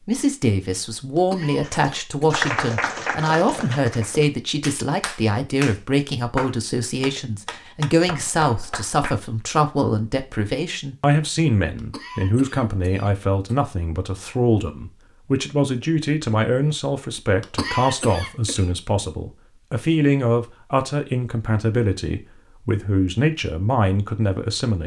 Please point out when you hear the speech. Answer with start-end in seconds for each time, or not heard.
0.1-24.8.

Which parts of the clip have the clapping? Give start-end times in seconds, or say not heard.
1.6-9.2.